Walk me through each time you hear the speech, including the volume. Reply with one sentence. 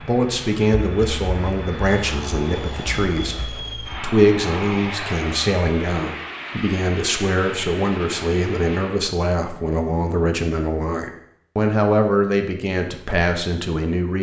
The speech can be heard from 0.1 to 14.1 s, at a steady volume.